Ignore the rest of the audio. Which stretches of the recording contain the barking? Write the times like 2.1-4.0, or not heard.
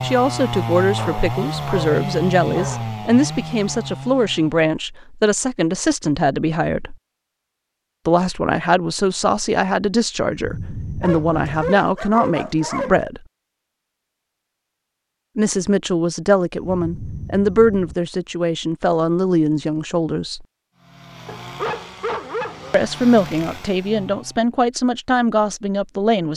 0.9-2.9, 11.0-13.0, 21.2-22.8.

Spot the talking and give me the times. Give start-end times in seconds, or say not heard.
0.0-7.0, 8.1-13.2, 15.3-20.4, 22.7-26.3.